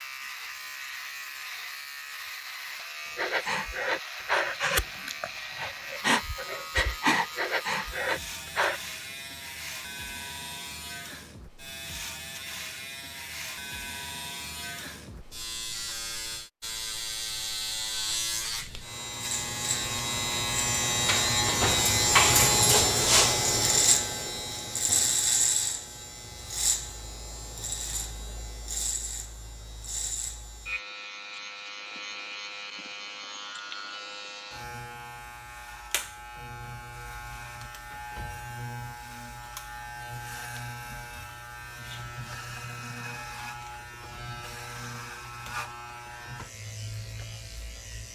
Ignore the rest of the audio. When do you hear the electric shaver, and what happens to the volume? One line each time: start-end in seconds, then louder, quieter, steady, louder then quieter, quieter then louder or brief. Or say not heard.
0.0-48.1 louder then quieter.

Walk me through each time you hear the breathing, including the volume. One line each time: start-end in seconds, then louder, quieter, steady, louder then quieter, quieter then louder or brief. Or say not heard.
3.1-8.8 steady.